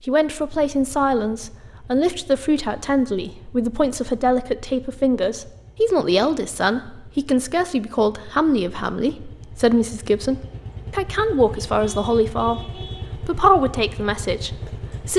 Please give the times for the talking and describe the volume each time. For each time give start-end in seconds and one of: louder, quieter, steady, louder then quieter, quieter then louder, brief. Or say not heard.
0.1-15.1 steady.